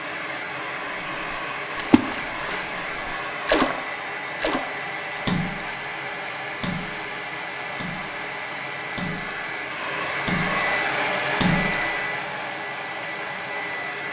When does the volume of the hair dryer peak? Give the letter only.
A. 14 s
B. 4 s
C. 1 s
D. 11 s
D.